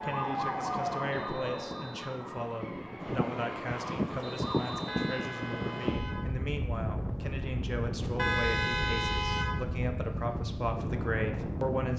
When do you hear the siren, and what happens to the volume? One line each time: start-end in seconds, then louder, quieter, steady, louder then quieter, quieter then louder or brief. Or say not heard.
0.0-4.8 quieter.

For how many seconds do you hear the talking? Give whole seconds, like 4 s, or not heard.
12 s.